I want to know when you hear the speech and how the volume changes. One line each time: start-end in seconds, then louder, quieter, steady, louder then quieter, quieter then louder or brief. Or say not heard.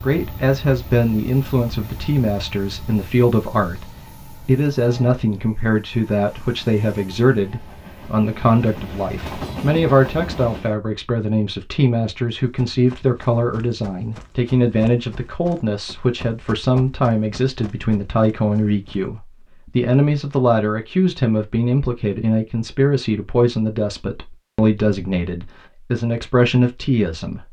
0.0-27.4 steady.